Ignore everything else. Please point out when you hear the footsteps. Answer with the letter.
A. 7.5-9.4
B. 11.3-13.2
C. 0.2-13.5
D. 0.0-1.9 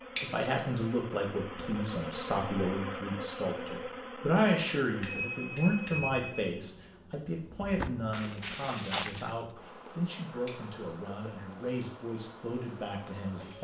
A.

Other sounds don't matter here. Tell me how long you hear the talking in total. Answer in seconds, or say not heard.
13 s.